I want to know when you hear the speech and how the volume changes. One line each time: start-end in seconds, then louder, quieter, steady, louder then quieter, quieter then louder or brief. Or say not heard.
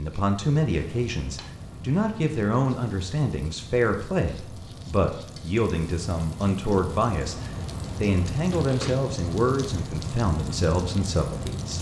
0.0-11.7 steady.